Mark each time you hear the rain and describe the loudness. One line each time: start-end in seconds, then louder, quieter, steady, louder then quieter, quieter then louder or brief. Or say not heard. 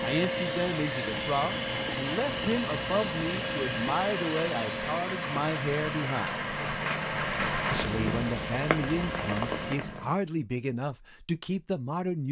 0.0-10.2 louder.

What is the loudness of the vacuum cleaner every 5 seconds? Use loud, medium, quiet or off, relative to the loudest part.
loud, medium, off.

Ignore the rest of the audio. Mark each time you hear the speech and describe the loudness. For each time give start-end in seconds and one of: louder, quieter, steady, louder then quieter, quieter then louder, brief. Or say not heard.
0.0-6.5 steady
7.7-12.2 steady.